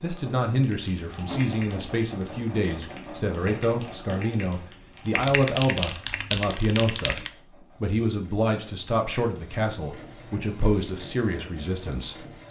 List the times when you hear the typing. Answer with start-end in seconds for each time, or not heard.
0.6-7.3.